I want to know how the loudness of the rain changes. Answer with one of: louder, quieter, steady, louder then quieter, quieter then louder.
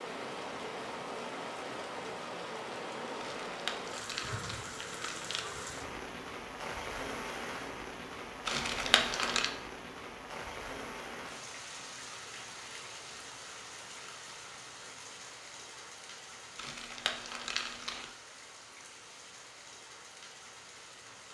quieter.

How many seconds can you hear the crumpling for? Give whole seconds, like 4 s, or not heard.
5 s.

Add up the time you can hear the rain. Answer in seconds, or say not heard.
21 s.